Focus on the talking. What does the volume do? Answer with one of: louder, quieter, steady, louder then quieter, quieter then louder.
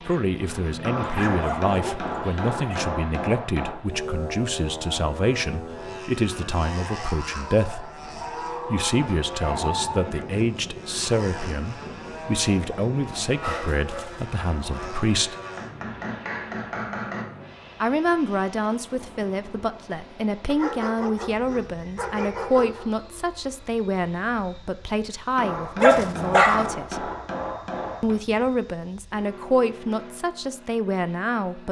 steady.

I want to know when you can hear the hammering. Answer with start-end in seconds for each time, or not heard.
0.8-3.8, 15.6-17.2, 25.4-28.2.